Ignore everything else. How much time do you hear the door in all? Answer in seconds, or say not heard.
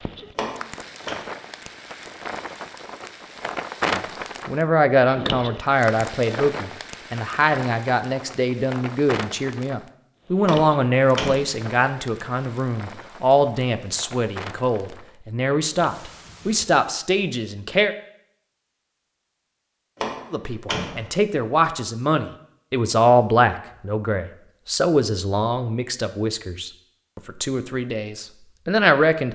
3 s.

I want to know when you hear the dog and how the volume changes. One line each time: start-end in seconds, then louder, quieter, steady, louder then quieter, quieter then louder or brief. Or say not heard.
not heard.